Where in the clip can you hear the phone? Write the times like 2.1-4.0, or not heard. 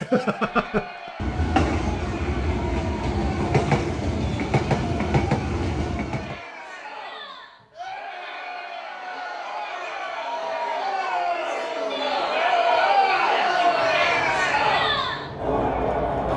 not heard.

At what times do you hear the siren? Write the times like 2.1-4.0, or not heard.
not heard.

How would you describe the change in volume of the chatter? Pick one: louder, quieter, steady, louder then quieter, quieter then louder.
louder.